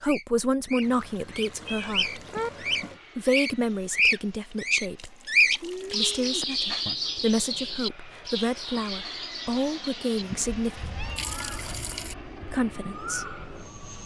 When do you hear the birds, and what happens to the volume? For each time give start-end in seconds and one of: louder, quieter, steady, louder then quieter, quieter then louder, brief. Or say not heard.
0.0-13.8 louder then quieter.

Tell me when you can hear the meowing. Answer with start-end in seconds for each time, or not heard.
1.6-2.5, 5.6-7.0, 10.8-12.1.